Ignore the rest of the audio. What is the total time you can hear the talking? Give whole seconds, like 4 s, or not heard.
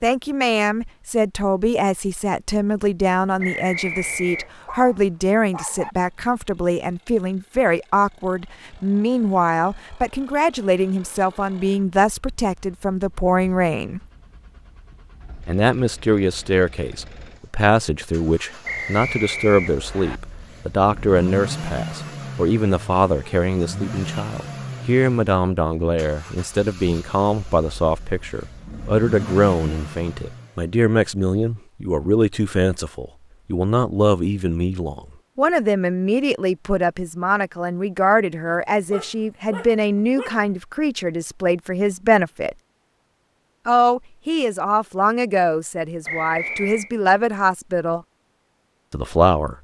46 s.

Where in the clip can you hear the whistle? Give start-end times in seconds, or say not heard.
3.4-4.5, 18.6-20.2, 46.0-46.9.